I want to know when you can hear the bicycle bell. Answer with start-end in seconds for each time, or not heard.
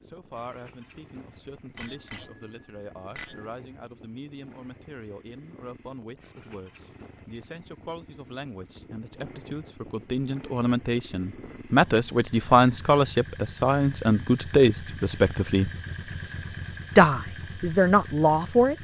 1.8-3.5.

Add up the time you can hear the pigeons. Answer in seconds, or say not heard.
not heard.